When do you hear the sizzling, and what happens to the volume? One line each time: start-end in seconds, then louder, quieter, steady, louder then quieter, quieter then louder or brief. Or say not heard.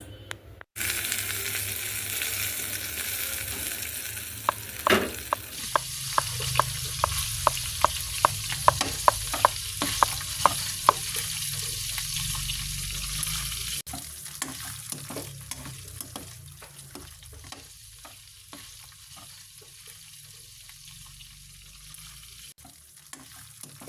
0.0-23.8 quieter.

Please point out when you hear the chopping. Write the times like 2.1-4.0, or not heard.
4.5-10.9.